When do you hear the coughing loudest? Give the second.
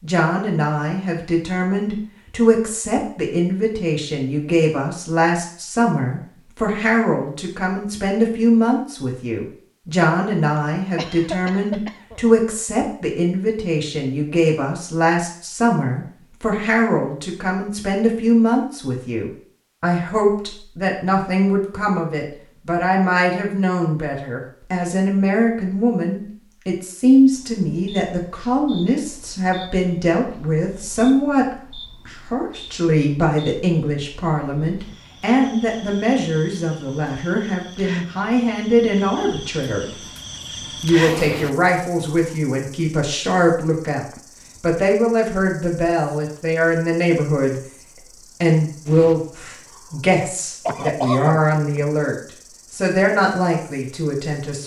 51 s.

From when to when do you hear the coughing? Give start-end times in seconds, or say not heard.
10.9-12.2, 50.6-51.5.